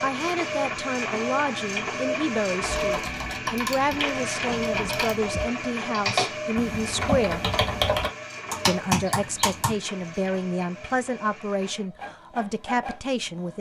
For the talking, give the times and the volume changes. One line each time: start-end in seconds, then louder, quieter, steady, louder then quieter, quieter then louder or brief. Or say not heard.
0.0-7.5 steady
8.7-13.5 steady.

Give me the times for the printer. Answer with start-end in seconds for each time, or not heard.
0.0-13.5.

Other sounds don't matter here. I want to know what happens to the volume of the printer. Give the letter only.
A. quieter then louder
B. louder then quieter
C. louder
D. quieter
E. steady
D.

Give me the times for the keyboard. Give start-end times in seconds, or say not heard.
2.6-9.8.